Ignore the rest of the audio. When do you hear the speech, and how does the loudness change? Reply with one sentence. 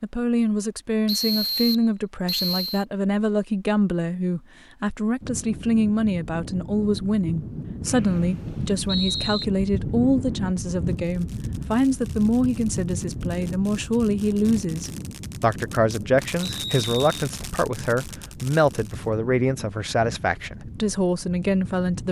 The speech can be heard from 0.0 to 22.0 s, at a steady volume.